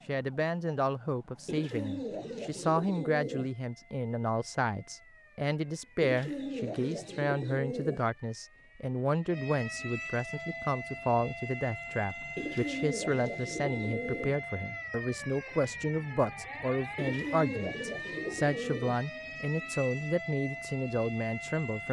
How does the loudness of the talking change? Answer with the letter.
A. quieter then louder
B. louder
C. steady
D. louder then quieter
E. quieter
C.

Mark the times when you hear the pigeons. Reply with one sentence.
The pigeons can be heard from 1.4 to 3.5 s, from 6.0 to 8.1 s, from 12.3 to 14.3 s and from 16.9 to 19.0 s.